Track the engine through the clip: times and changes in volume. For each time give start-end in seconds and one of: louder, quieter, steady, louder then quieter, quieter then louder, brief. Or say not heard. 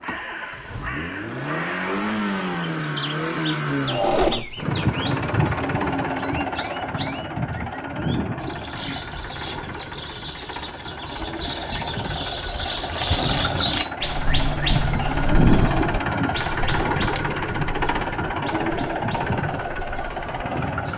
0.0-20.9 quieter then louder.